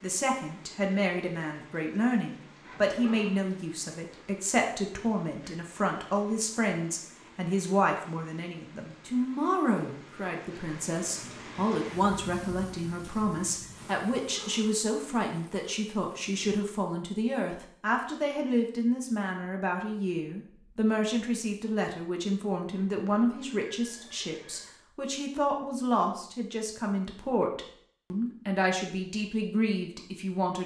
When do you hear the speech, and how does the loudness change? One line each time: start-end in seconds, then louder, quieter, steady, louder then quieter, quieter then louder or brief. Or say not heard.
0.0-30.6 steady.